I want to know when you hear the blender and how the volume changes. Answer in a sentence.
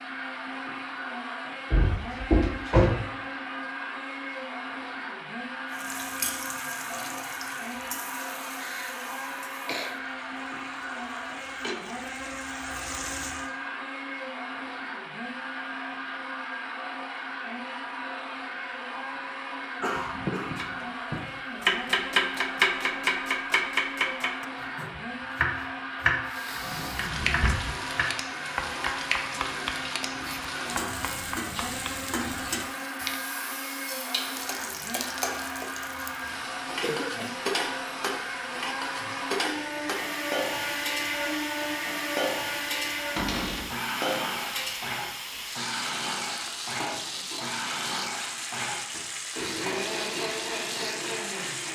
The blender can be heard from 0.0 to 51.7 s, at a steady volume.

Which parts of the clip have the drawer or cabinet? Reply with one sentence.
The drawer or cabinet can be heard from 1.7 to 2.9 s, from 26.6 to 27.8 s and from 43.1 to 43.7 s.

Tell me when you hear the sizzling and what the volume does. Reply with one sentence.
The sizzling can be heard from 5.7 to 13.5 s, getting quieter then louder; and from 26.2 to 51.7 s, at a steady volume.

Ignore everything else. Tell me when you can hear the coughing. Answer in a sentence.
You can hear the coughing from 8.6 to 9.9 s, from 19.8 to 20.9 s and from 36.8 to 37.4 s.